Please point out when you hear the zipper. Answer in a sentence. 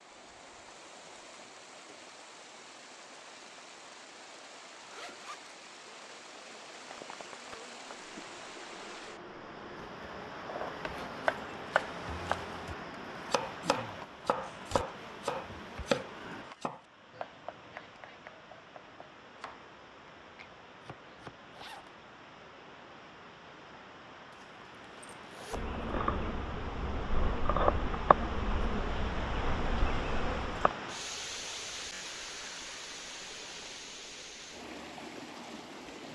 The zipper can be heard from 4.8 to 5.5 s, from 21.5 to 21.9 s and from 24.4 to 25.6 s.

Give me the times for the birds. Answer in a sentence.
The birds can't be heard in this clip.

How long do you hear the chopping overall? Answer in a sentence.
The chopping can be heard for 11 seconds in total.